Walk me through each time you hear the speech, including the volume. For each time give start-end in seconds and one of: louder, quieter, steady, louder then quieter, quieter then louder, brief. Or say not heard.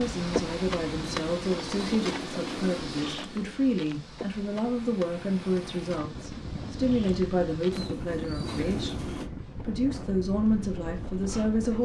0.0-11.8 steady.